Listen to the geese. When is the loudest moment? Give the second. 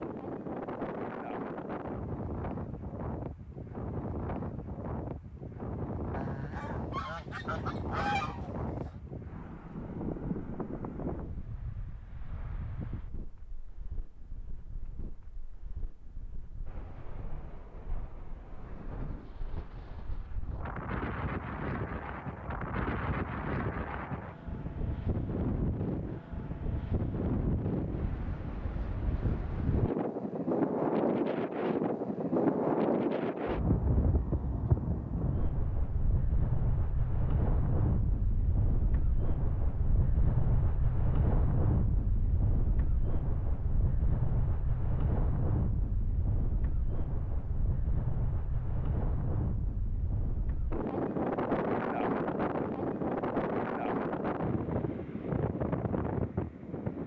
8 s.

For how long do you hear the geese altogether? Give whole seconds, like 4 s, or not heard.
3 s.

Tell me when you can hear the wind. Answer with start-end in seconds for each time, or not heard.
0.0-57.0.